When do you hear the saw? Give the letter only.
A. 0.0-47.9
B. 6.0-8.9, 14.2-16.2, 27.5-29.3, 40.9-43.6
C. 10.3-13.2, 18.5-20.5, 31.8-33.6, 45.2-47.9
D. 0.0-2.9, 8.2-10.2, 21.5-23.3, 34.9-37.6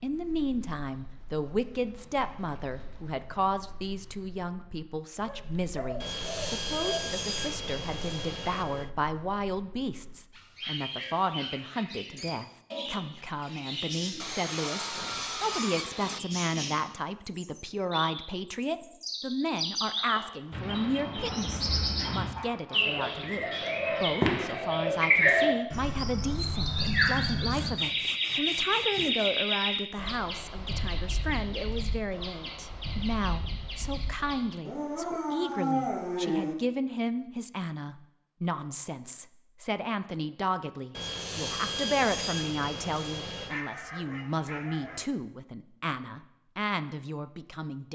B.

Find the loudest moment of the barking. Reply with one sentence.
The loudest moment of the barking is at 36 seconds.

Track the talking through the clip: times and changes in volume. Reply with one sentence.
The talking can be heard from 0.0 to 47.9 s, at a steady volume.